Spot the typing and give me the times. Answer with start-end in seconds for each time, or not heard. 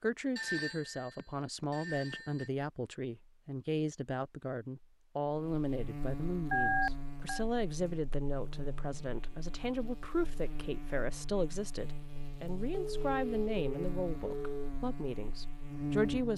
not heard.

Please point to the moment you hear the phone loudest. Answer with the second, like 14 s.
7 s.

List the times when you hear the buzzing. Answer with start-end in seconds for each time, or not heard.
5.2-16.3.